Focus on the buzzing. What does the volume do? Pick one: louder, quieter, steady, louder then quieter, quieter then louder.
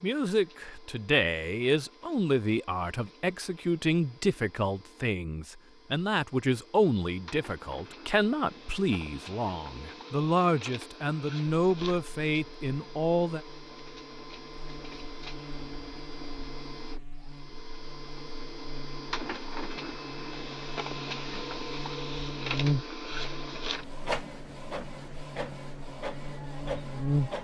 louder then quieter.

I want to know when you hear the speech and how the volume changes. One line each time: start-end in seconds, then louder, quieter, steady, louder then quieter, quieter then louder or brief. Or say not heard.
0.0-13.4 steady.